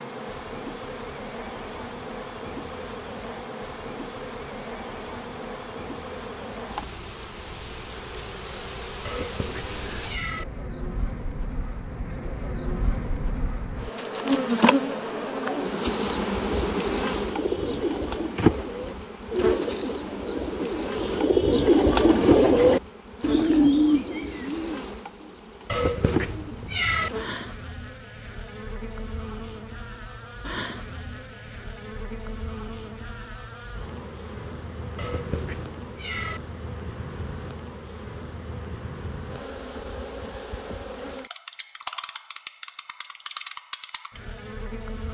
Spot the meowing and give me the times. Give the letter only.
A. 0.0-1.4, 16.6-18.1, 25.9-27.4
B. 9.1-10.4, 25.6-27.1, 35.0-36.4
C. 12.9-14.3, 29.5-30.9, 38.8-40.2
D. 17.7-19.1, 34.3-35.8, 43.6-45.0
B.